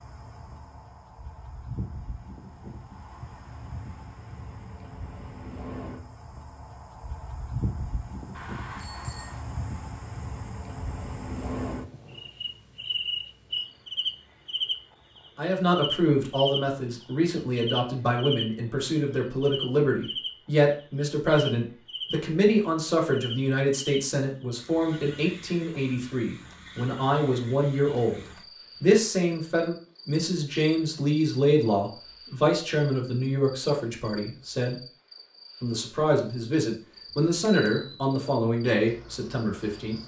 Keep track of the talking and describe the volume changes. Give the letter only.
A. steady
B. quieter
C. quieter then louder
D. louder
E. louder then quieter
A.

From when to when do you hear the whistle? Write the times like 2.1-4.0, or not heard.
not heard.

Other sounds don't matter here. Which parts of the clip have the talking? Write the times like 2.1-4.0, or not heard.
15.3-28.2, 28.8-34.8, 35.6-40.0.